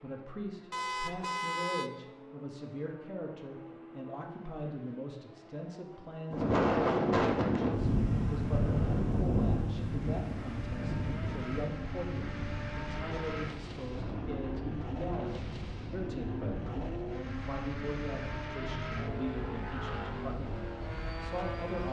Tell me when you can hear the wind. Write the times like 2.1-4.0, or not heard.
6.3-21.8.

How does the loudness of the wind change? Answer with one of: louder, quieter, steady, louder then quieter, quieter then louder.
quieter.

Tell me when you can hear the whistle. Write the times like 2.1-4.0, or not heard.
not heard.